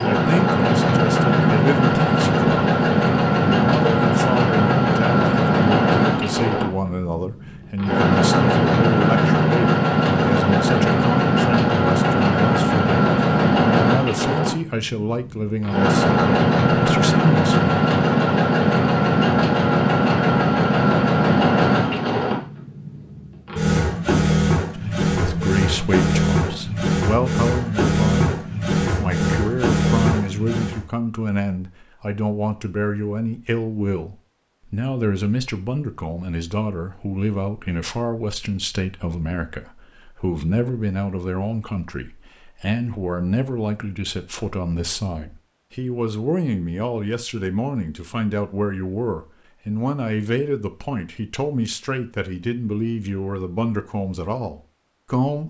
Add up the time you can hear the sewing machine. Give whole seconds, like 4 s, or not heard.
31 s.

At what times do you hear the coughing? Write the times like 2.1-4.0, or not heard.
not heard.